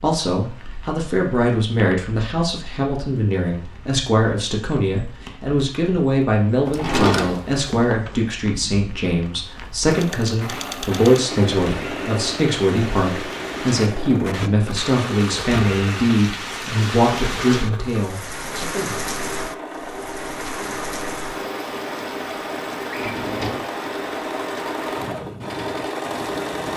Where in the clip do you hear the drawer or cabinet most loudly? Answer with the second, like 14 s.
7 s.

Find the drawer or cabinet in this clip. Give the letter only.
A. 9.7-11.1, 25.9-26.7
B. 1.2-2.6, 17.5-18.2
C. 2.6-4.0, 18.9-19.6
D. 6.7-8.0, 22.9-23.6
D.